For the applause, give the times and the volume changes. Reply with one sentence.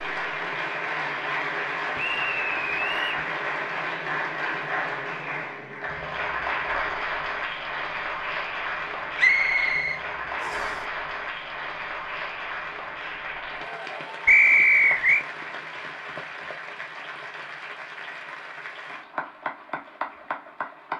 The applause can be heard from 0.0 to 20.9 s, getting quieter.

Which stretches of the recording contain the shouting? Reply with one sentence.
You can't hear the shouting here.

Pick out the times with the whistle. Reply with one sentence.
You can hear the whistle from 1.9 to 3.2 s, from 9.2 to 10.7 s and from 14.2 to 15.2 s.